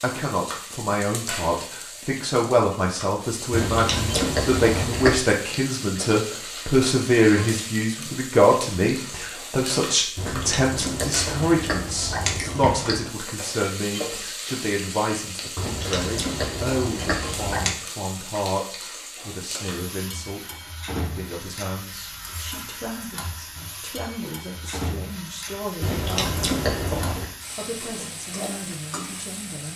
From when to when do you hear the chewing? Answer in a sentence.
You can hear the chewing from 3.5 to 5.2 s, from 10.2 to 13.1 s, from 15.6 to 17.8 s and from 25.8 to 27.3 s.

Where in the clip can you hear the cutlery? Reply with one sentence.
You can't hear the cutlery here.